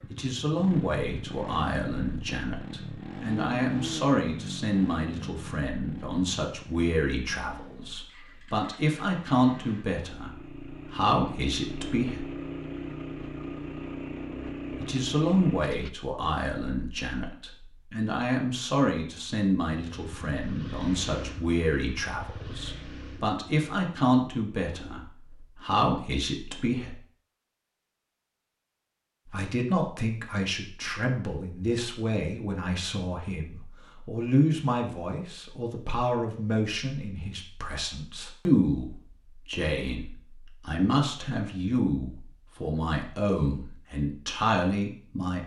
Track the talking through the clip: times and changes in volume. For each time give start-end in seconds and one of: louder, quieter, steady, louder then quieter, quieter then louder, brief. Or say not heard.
0.1-12.2 steady
14.8-26.9 steady
29.2-45.4 steady.